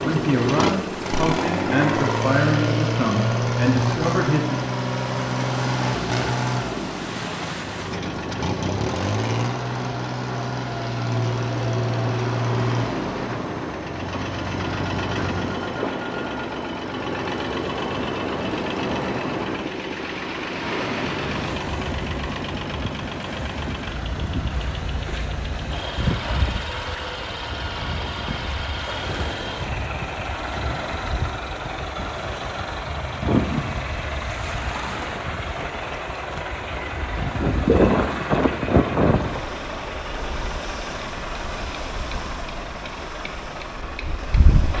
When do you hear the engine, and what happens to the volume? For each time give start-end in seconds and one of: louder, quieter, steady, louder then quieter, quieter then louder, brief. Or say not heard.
0.0-44.7 quieter.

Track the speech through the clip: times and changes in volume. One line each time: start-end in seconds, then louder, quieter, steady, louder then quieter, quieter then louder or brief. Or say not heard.
0.0-4.6 steady.